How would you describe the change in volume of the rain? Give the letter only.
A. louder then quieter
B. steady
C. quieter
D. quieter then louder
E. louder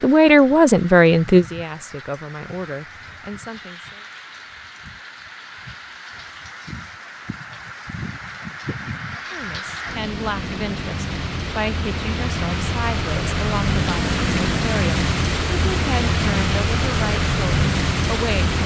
E.